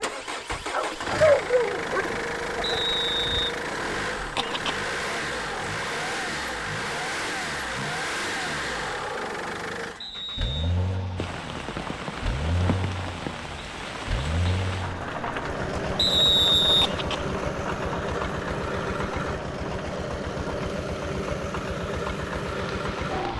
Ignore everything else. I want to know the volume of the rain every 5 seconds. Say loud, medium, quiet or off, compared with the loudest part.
off, off, loud, loud, medium.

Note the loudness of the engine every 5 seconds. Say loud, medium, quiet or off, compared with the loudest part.
loud, loud, medium, loud, loud.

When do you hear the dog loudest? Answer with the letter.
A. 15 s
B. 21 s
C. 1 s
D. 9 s
C.